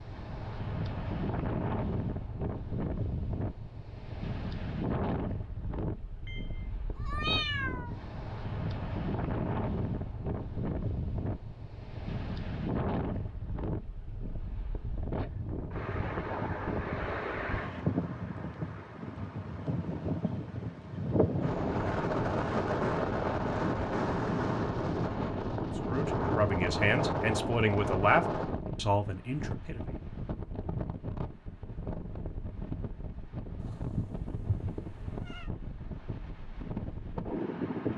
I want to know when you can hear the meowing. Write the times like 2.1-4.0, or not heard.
6.2-8.0, 33.5-35.5.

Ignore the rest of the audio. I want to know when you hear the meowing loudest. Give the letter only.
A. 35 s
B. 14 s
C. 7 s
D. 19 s
C.